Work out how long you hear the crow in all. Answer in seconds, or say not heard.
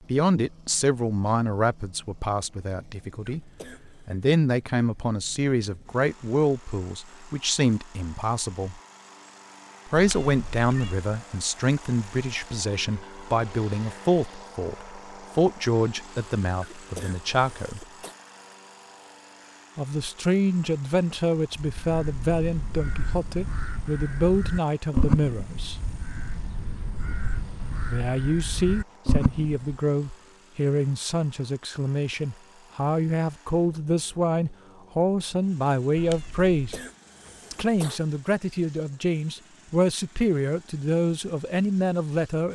8 s.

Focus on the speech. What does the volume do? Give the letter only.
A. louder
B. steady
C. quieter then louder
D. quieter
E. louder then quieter
B.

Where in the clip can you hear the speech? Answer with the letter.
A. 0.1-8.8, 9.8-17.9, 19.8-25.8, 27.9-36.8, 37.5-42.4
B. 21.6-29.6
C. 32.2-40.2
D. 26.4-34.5
A.